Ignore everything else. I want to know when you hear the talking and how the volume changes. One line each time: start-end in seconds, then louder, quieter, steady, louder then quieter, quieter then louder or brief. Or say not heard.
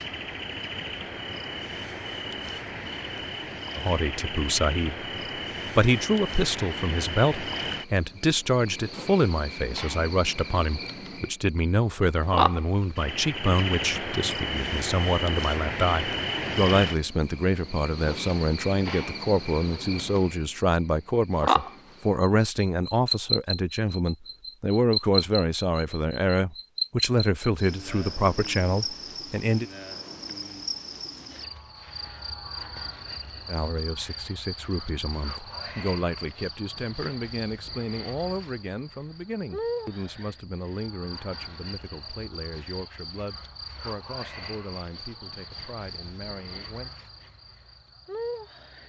3.8-5.0 brief
5.8-29.7 steady
33.5-46.9 quieter.